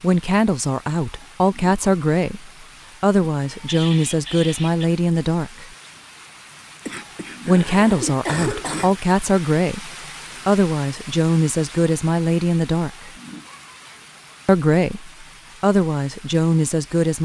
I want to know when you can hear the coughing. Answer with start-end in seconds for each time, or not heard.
6.8-8.9.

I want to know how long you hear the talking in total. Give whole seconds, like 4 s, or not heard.
14 s.